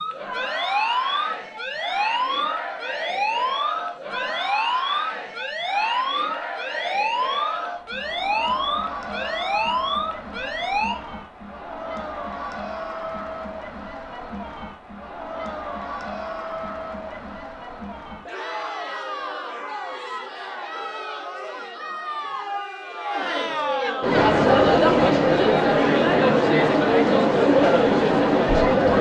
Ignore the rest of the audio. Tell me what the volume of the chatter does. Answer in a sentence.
The volume of the chatter goes up.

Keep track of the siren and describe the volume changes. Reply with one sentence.
The loudness of the siren stays about the same.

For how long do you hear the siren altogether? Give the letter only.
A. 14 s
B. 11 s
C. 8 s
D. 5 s
B.